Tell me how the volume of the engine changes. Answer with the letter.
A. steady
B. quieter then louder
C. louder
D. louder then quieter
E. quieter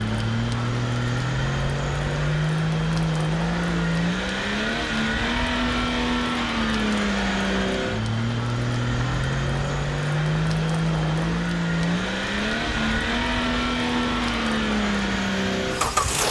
A.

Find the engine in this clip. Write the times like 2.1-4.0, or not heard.
0.0-16.2.